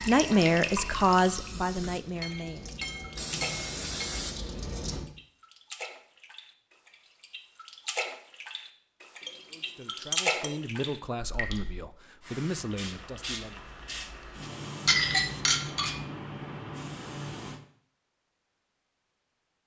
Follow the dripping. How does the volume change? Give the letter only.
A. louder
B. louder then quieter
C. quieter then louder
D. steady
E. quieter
C.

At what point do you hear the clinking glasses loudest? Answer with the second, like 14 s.
15 s.